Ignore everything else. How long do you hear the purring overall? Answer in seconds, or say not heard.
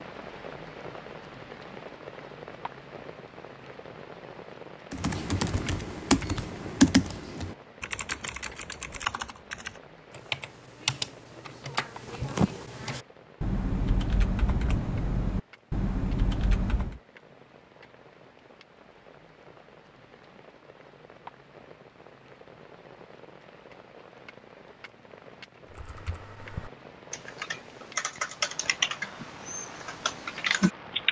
not heard.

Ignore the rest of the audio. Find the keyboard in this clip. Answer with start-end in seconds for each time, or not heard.
4.9-17.0, 25.6-31.0.